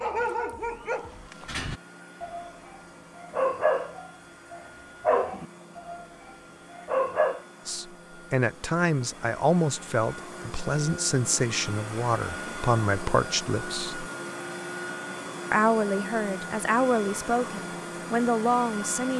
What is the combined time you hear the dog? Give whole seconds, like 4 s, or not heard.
6 s.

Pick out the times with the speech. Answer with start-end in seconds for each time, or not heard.
7.7-14.1, 15.5-19.1.